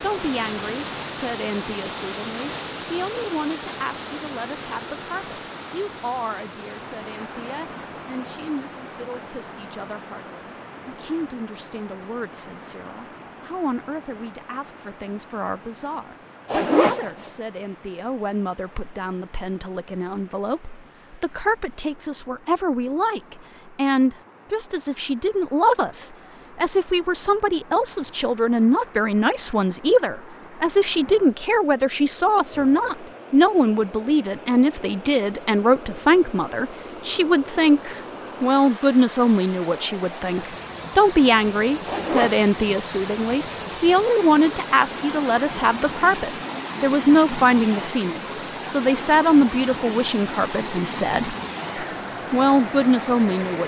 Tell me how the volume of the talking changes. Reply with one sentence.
The loudness of the talking goes up.